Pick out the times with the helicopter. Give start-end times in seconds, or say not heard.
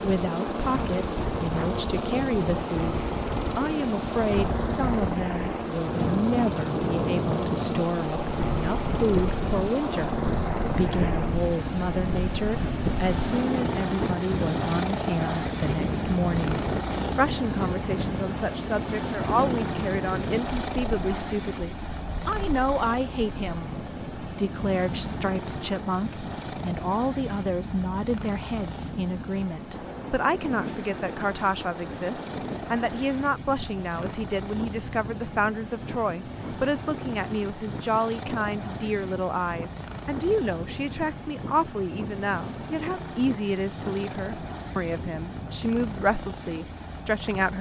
0.0-47.5.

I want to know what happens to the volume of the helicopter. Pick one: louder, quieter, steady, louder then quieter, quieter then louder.
quieter.